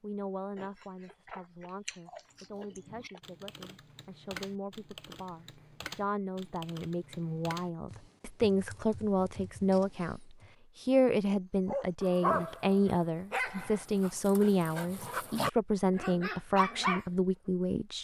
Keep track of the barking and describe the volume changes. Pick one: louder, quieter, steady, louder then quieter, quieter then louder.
quieter then louder.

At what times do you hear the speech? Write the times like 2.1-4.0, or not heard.
0.0-17.9.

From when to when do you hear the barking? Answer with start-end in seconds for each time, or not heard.
11.7-17.1.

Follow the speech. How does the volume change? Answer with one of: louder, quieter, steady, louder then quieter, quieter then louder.
louder.